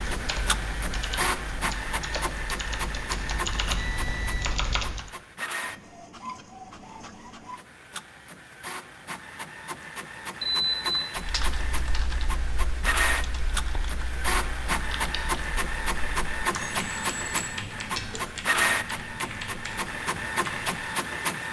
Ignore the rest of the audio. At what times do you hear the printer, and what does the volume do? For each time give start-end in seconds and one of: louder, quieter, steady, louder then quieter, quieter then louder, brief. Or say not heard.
0.0-21.4 quieter then louder.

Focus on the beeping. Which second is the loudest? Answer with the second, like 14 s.
11 s.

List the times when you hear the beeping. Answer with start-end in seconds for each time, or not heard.
3.8-4.4, 10.4-11.1, 16.6-17.6.